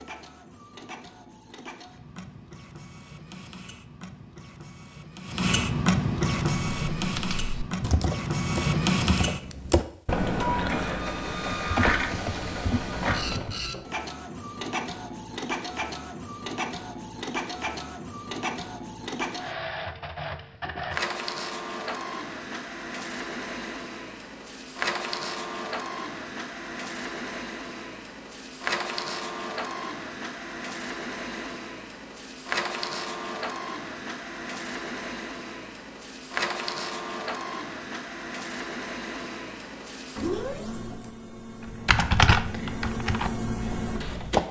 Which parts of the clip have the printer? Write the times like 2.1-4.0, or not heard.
0.0-44.4.